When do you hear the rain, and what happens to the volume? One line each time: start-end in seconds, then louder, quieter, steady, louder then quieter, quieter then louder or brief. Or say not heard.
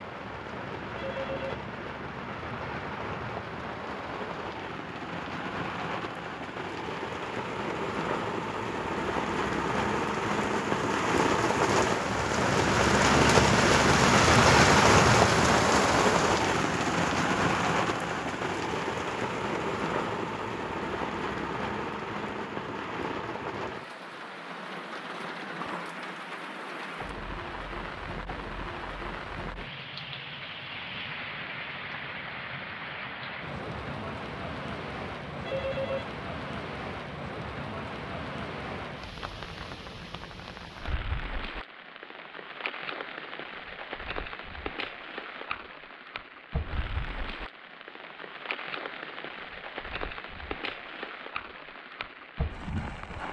0.0-53.2 louder then quieter.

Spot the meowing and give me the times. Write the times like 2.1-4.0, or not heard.
not heard.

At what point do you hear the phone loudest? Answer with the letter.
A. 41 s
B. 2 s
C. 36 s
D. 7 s
C.